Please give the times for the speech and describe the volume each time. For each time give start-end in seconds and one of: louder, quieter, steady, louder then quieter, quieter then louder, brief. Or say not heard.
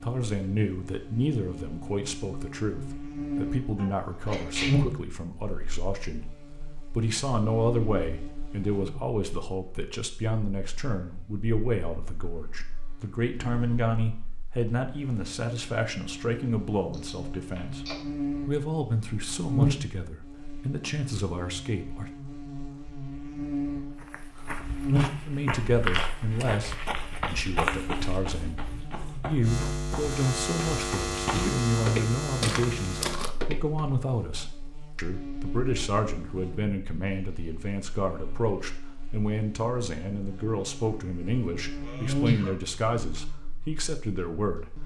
0.0-22.1 steady
25.2-44.8 steady.